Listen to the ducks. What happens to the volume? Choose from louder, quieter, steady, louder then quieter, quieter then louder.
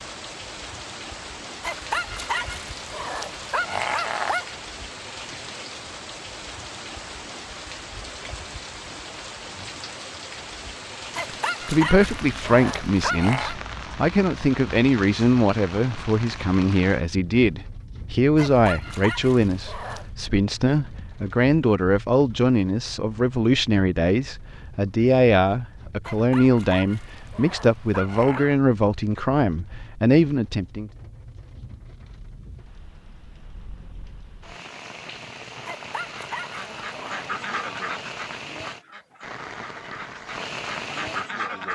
quieter then louder.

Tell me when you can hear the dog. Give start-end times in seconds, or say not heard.
1.6-4.5, 11.2-13.6, 18.4-20.1, 26.1-28.6, 35.6-37.2.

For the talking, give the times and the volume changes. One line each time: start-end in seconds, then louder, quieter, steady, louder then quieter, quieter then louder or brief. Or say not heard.
11.7-30.9 steady.